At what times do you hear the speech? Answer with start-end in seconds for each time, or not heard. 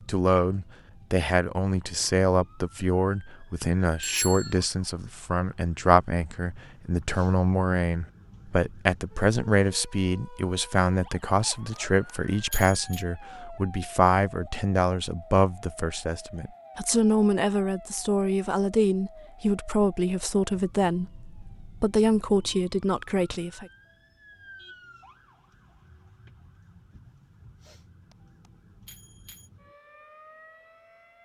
0.1-23.6.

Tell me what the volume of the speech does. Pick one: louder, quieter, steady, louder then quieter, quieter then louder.
steady.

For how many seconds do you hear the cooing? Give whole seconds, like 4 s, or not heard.
not heard.